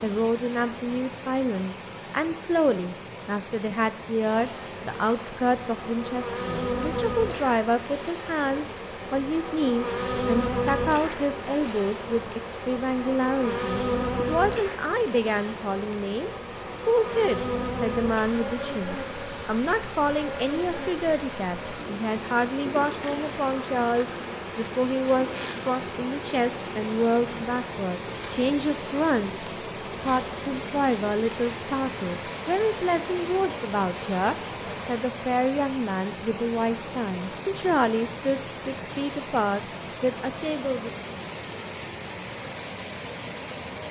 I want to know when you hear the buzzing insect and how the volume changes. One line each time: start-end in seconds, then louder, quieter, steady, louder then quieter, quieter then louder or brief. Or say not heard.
4.3-35.0 quieter.